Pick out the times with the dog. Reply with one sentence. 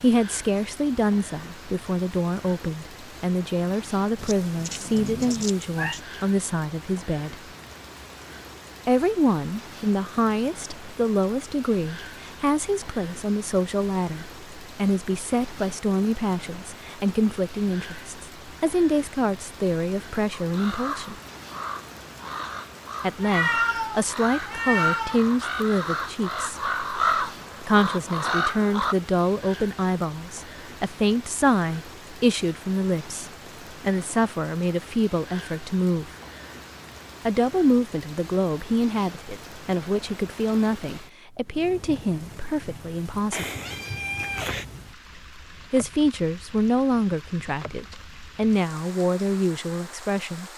You can't hear the dog here.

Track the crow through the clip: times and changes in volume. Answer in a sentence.
The crow can be heard from 20.4 to 28.9 s, getting louder.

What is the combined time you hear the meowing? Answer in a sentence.
The meowing can be heard for 5 seconds in total.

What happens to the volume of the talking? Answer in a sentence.
The volume of the talking stays about the same.